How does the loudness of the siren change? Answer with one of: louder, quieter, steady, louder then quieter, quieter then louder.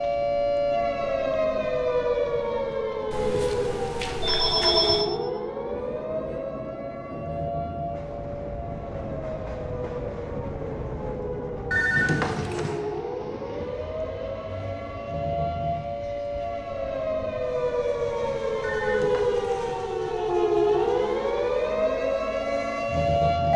quieter then louder.